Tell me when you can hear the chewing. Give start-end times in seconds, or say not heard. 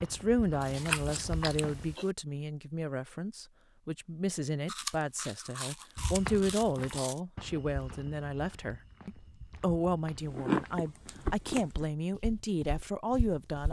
0.6-2.0, 4.7-7.2, 10.2-11.8.